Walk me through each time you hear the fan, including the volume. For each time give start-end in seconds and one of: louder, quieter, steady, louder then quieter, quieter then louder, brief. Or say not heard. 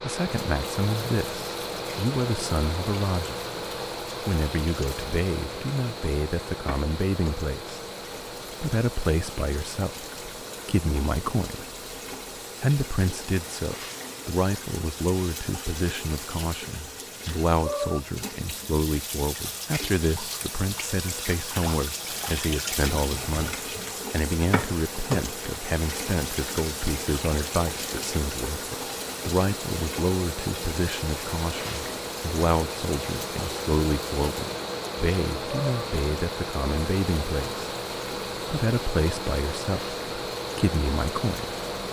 0.0-41.8 quieter then louder.